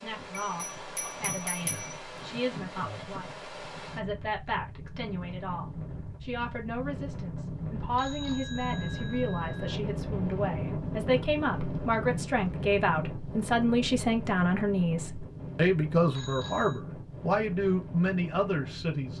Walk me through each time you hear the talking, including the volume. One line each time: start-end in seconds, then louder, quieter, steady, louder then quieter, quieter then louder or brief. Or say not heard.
0.0-19.1 louder.